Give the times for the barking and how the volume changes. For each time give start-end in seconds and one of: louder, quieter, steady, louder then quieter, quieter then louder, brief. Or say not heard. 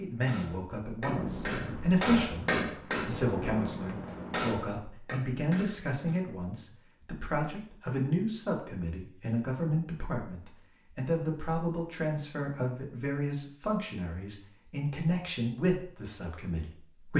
not heard.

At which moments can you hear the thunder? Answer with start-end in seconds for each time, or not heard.
1.1-4.8.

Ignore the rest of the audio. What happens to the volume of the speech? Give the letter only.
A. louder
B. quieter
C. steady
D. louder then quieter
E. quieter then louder
C.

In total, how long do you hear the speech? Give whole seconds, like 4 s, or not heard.
17 s.